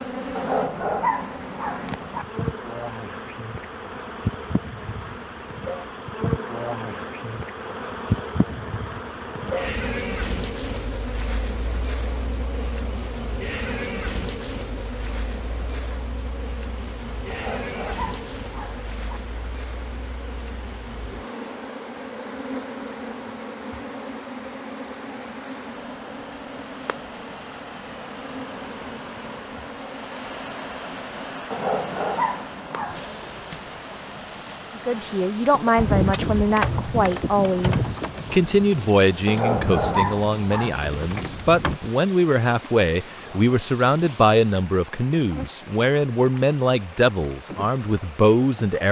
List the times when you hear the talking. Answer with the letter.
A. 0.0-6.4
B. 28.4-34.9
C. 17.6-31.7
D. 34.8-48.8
D.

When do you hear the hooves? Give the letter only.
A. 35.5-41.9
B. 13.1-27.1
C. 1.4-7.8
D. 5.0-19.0
A.